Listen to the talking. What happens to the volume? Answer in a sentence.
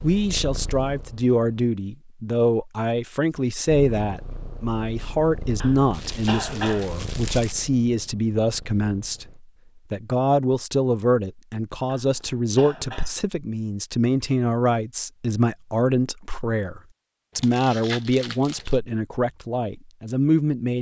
The loudness of the talking stays about the same.